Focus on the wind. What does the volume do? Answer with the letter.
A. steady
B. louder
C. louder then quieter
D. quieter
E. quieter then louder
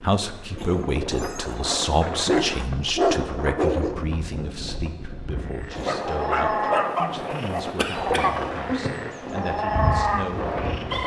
A.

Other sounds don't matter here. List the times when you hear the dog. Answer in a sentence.
You can hear the dog from 2.2 to 4.0 s and from 5.8 to 7.7 s.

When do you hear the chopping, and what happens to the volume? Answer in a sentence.
You can't hear the chopping here.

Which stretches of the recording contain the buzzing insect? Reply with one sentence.
You can hear the buzzing insect from 8.7 to 11.0 s.